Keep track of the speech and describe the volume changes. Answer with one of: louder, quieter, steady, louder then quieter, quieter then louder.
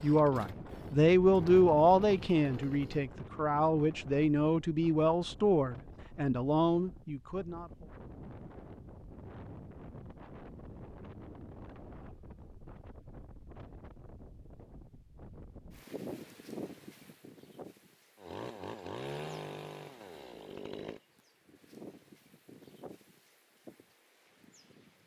quieter.